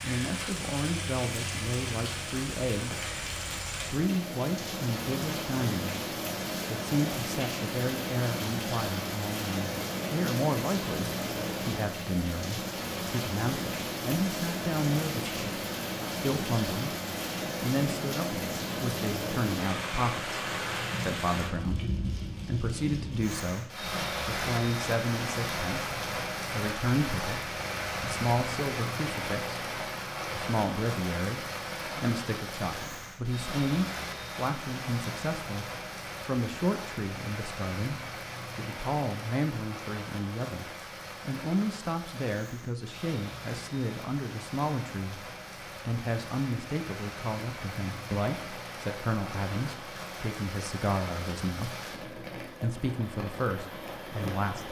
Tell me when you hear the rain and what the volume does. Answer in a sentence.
You can hear the rain from 0.0 to 54.6 s, getting quieter.